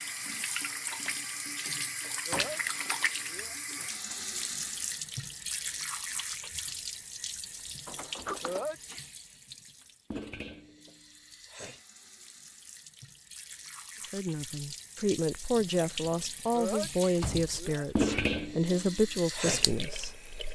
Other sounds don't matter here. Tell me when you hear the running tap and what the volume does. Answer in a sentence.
You can hear the running tap from 0.0 to 20.5 s, getting quieter then louder.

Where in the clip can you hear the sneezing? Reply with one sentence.
You can hear the sneezing from 2.2 to 4.0 s, from 8.4 to 9.1 s and from 16.5 to 18.2 s.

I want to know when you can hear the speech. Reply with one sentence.
The speech can be heard from 14.0 to 20.3 s.